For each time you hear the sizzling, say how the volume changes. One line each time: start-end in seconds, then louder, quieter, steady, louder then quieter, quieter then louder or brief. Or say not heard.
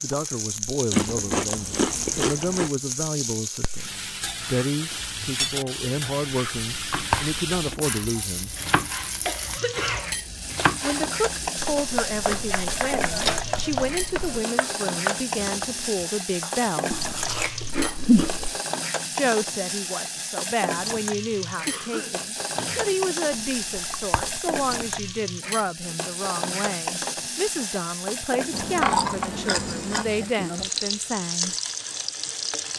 0.0-32.7 steady.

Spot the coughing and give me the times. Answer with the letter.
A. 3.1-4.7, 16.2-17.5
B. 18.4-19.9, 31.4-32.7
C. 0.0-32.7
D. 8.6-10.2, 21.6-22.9
D.